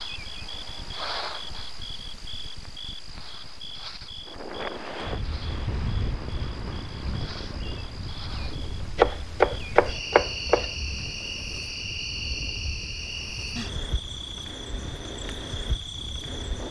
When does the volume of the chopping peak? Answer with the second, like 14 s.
9 s.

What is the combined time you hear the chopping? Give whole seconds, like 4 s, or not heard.
2 s.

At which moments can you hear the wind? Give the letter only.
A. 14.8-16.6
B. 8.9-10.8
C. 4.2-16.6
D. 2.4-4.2
C.